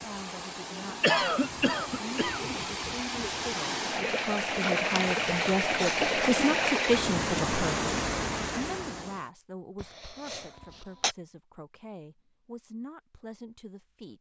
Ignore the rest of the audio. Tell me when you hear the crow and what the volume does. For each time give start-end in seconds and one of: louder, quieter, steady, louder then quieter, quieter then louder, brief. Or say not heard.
not heard.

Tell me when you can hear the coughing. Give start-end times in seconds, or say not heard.
1.0-2.6, 5.8-6.8, 9.8-11.2.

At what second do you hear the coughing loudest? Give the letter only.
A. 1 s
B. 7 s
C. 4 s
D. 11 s
A.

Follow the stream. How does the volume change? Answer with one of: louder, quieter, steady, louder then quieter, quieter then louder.
louder.